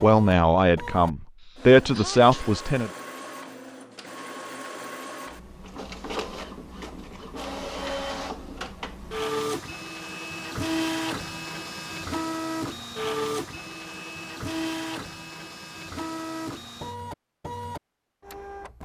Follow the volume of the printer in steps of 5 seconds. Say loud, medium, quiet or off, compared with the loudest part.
medium, loud, loud, medium.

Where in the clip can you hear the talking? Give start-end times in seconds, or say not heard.
0.0-2.9.